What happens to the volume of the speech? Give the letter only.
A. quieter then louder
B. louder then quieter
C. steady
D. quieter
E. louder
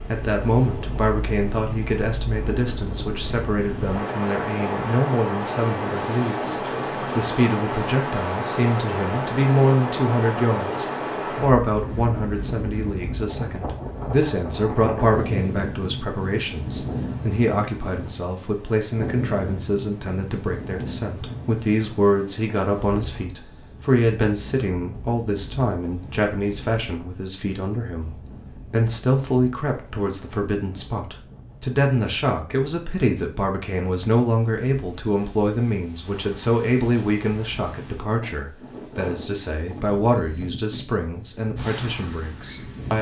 C.